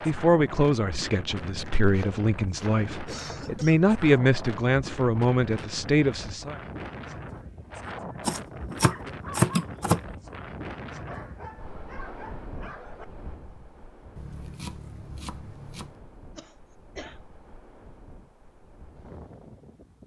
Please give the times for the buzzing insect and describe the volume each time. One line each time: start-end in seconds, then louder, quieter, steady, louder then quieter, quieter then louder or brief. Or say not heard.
not heard.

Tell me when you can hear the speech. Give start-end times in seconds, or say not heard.
0.0-6.5.